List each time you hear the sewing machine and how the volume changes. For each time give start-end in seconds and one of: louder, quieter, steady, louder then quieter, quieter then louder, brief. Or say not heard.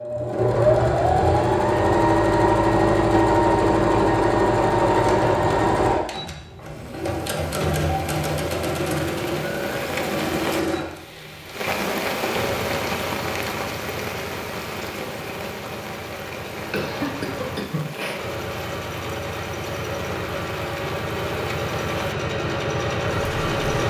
0.0-23.8 quieter then louder.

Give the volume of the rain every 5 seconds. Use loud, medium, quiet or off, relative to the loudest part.
off, medium, loud, medium, medium.